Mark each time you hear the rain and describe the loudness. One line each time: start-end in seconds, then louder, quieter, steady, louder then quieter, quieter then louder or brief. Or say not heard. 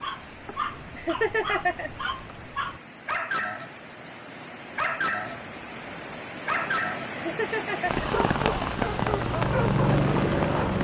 0.0-10.8 louder.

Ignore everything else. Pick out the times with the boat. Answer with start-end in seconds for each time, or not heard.
8.0-10.8.